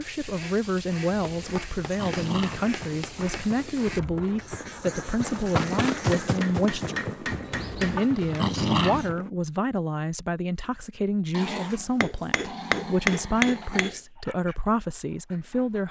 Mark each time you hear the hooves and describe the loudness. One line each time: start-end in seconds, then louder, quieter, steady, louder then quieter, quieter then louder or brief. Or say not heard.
2.3-9.3 louder then quieter.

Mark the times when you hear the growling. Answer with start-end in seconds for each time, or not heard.
1.1-2.7, 7.5-9.1, 11.3-13.9.